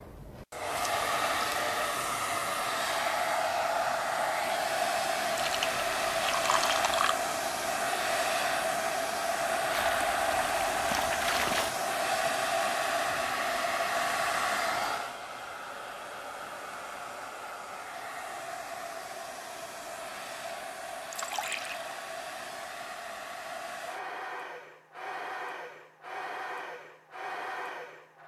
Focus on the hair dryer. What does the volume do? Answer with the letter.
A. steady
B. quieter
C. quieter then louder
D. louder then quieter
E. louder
B.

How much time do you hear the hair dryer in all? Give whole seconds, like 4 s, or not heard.
28 s.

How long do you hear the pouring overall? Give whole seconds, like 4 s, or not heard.
5 s.